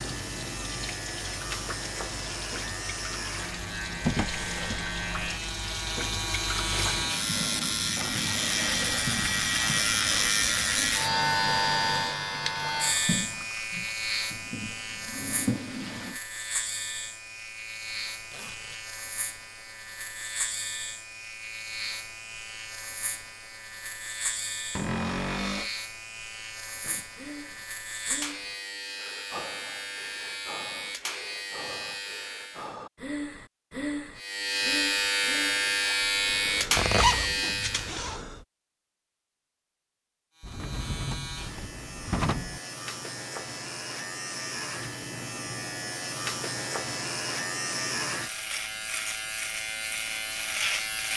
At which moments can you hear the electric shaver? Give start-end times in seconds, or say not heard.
0.0-32.8, 34.1-38.0, 40.4-51.1.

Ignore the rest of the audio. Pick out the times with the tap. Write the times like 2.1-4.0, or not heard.
0.0-16.2.